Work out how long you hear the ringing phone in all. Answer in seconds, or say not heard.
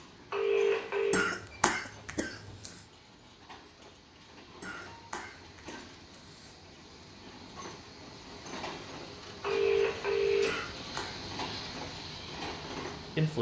2 s.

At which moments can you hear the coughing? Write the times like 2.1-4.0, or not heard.
1.1-2.8, 4.6-6.5, 10.4-11.2.